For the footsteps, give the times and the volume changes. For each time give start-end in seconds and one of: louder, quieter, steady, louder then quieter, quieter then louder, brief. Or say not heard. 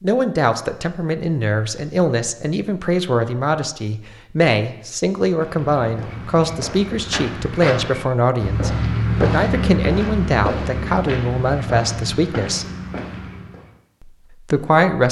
5.2-13.7 louder then quieter.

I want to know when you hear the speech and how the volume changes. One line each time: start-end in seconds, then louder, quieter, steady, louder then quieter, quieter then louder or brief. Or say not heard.
0.0-12.7 steady
14.0-15.0 brief.